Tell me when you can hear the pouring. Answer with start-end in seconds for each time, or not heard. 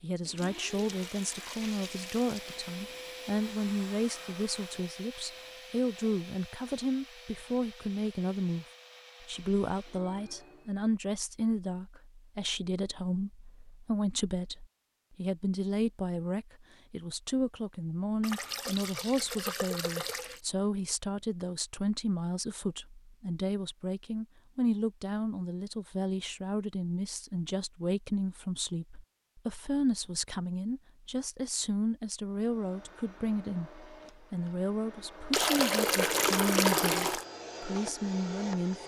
0.3-2.4, 18.2-20.4, 35.3-37.2.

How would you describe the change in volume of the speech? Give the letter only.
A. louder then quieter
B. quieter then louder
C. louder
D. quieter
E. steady
E.